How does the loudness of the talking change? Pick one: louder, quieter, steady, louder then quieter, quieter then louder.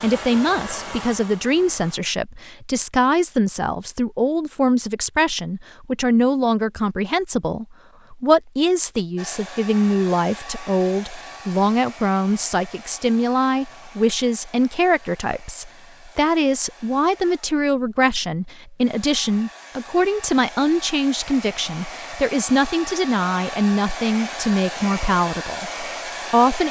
steady.